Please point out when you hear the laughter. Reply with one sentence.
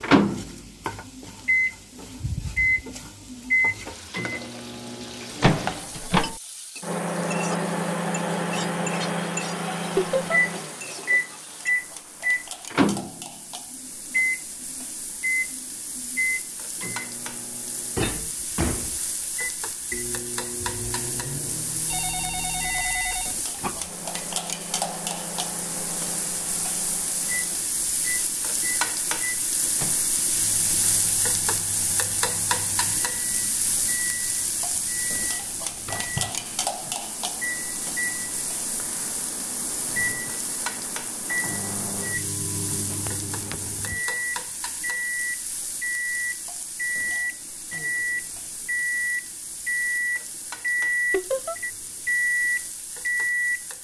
You can hear the laughter from 9.9 to 10.4 s and from 51.1 to 51.5 s.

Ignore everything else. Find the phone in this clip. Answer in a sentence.
You can hear the phone from 21.9 to 23.4 s.